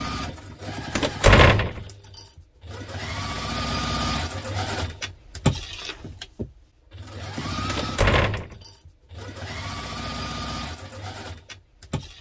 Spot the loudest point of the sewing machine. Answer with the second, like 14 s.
5 s.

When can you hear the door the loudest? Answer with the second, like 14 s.
1 s.